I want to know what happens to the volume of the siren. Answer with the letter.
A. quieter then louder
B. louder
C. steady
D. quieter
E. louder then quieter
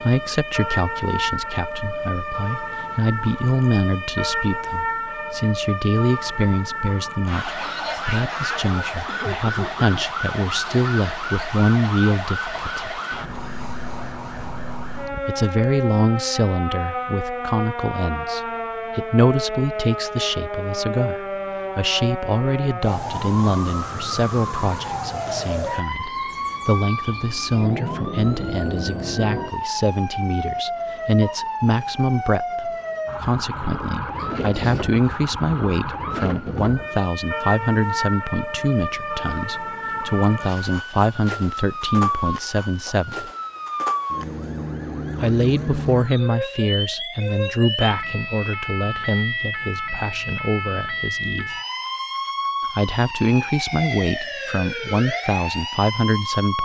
C.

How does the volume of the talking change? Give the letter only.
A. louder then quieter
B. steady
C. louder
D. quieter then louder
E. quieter
B.